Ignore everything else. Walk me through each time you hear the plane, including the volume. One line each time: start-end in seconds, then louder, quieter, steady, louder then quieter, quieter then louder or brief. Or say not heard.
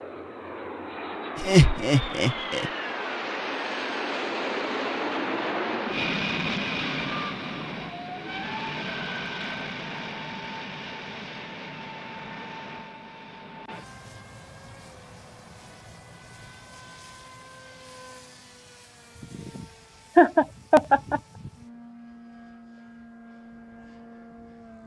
0.0-24.8 quieter.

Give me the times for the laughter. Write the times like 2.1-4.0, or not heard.
1.4-2.7, 20.1-21.2.